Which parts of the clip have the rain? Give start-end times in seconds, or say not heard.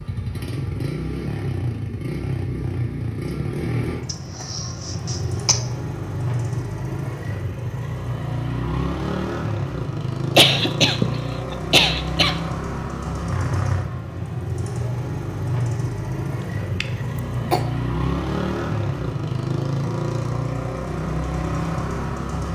not heard.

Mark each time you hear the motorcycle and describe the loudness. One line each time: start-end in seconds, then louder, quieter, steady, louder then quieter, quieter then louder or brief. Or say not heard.
0.0-22.5 steady.